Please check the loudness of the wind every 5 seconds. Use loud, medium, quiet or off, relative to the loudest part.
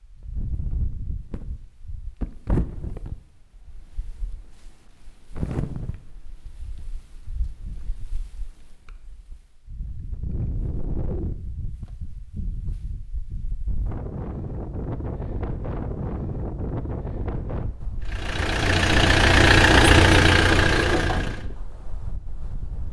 loud, medium, loud, loud, medium.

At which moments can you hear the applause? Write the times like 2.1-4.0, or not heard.
not heard.